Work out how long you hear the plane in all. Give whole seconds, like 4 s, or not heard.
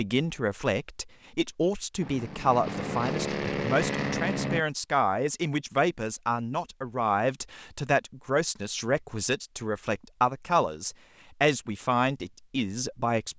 3 s.